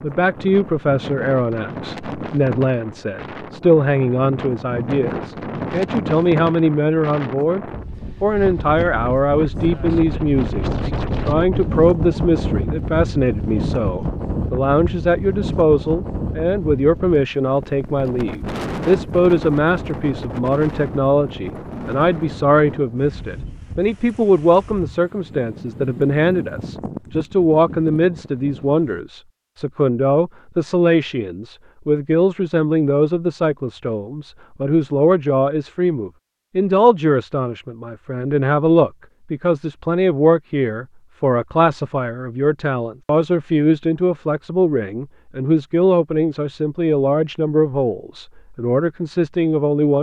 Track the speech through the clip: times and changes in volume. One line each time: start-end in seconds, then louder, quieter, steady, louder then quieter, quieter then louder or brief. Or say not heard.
0.0-49.9 steady.